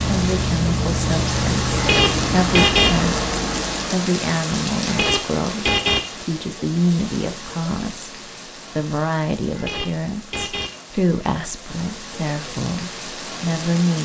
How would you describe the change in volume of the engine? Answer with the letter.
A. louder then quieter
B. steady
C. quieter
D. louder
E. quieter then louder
B.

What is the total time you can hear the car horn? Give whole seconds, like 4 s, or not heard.
4 s.